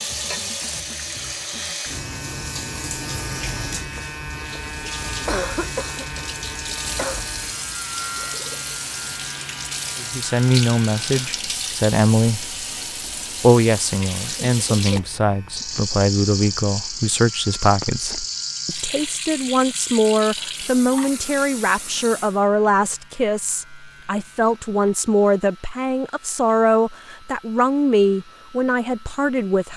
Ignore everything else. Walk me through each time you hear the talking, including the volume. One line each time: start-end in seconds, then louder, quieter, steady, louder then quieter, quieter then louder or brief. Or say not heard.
9.9-12.6 brief
13.4-29.7 steady.